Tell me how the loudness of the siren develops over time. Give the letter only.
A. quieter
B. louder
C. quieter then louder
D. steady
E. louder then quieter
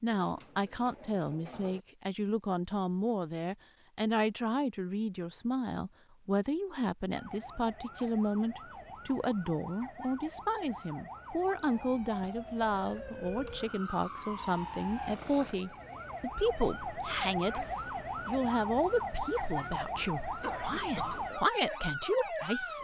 B.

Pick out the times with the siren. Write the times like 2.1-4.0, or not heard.
7.1-22.7.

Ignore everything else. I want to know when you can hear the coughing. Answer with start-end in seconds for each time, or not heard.
20.4-21.2.